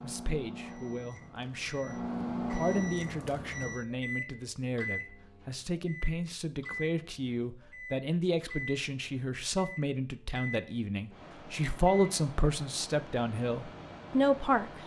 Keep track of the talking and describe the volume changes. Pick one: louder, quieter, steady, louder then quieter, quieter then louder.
louder.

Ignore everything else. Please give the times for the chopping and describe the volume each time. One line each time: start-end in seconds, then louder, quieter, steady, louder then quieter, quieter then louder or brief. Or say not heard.
not heard.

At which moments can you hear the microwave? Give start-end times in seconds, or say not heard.
0.0-14.8.